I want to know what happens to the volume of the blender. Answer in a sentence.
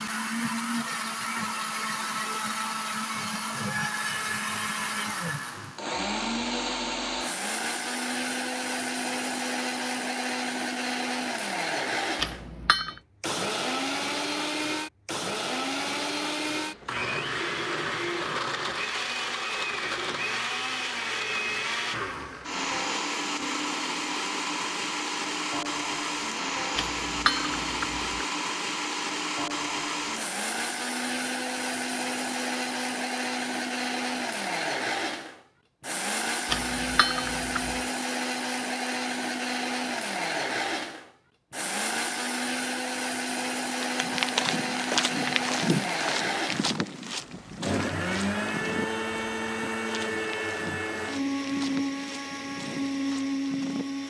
The loudness of the blender stays about the same.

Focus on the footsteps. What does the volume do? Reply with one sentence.
The loudness of the footsteps goes down.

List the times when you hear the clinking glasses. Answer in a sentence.
The clinking glasses can be heard from 12.2 to 13.0 s, from 26.8 to 28.2 s and from 36.5 to 37.8 s.